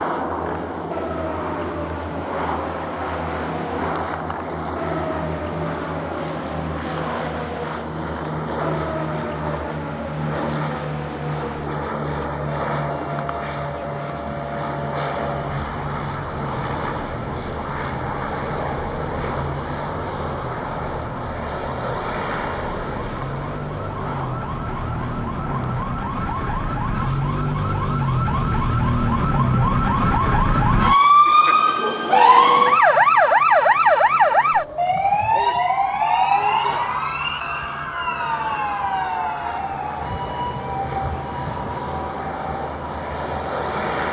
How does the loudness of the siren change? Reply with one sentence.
The loudness of the siren goes up, then down.